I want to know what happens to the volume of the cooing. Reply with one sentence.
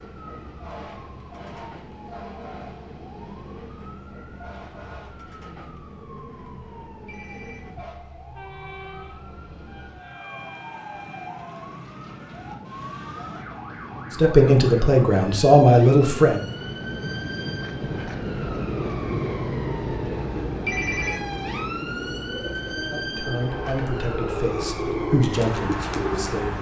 The loudness of the cooing goes up.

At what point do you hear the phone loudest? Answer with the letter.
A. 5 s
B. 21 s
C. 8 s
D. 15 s
B.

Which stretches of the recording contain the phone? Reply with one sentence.
You can hear the phone from 7.0 to 7.8 s and from 20.6 to 21.2 s.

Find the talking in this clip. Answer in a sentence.
The talking can be heard from 14.2 to 16.4 s and from 22.8 to 26.5 s.